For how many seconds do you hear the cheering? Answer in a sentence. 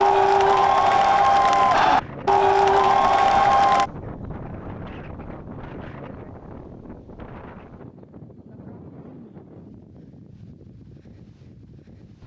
You can hear the cheering for 4 seconds altogether.